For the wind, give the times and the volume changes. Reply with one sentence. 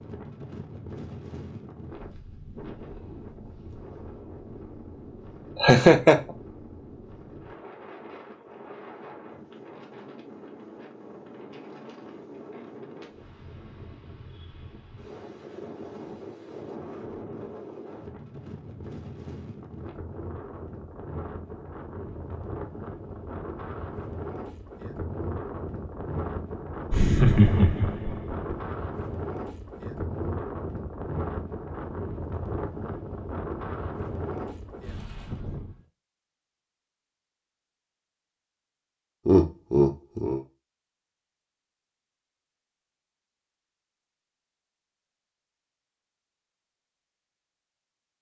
You can hear the wind from 0.0 to 35.9 s, getting louder.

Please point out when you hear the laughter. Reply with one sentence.
The laughter can be heard from 5.6 to 6.2 s, from 26.9 to 28.6 s and from 39.2 to 40.4 s.